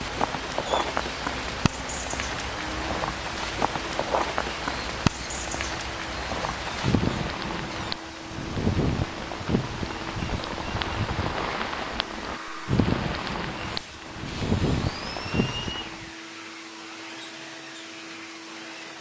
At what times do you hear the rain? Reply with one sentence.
You can hear the rain from 0.0 to 16.1 s.